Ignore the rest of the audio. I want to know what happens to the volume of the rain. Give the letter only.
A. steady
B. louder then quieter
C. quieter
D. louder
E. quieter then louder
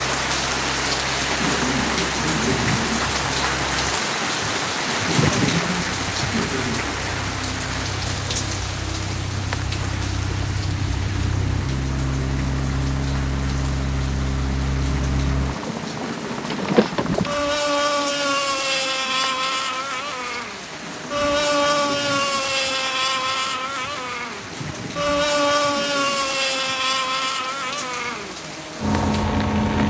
C.